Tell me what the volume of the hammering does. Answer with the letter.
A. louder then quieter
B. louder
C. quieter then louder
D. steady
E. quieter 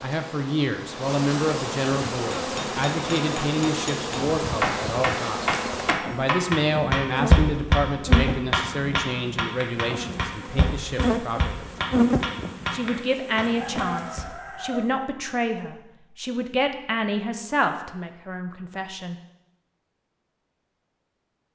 A.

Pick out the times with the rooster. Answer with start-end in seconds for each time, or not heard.
13.4-14.9.